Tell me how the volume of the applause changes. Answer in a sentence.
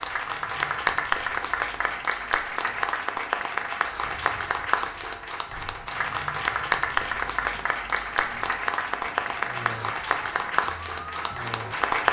The loudness of the applause stays about the same.